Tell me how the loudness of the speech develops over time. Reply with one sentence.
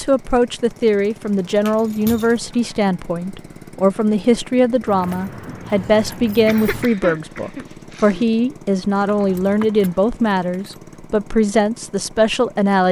The loudness of the speech stays about the same.